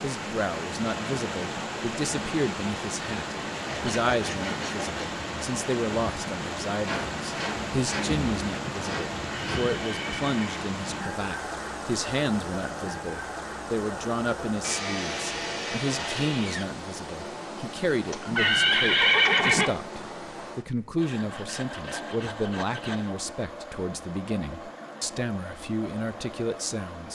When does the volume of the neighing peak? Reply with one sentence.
The volume of the neighing peaks at 19 seconds.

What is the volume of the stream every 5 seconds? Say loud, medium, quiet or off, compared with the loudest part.
loud, loud, loud, medium, medium, medium.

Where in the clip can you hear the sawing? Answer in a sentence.
You can hear the sawing from 3.6 to 5.1 s, from 6.8 to 9.8 s, from 14.6 to 16.6 s and from 21.0 to 23.1 s.